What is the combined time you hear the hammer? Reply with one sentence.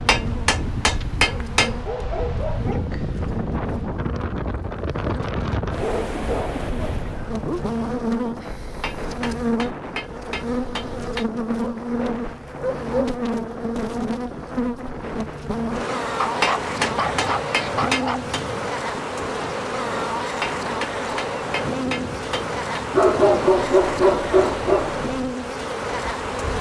The hammer can be heard for 9 seconds in total.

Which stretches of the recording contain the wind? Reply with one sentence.
You can hear the wind from 0.0 to 26.5 s.